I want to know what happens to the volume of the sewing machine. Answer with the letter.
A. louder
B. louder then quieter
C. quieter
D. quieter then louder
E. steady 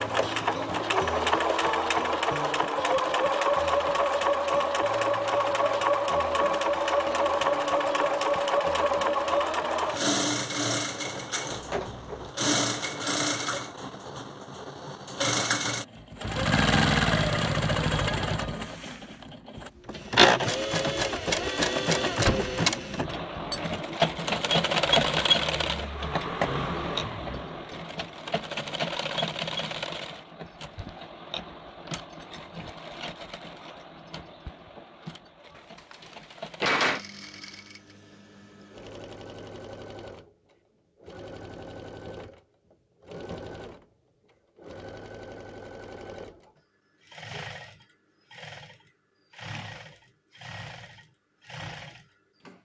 C.